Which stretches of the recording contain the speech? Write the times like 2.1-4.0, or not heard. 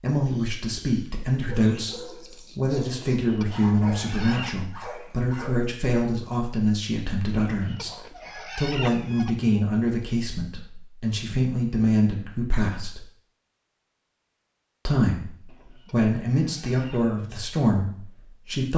0.0-8.0, 8.6-13.1, 14.8-18.7.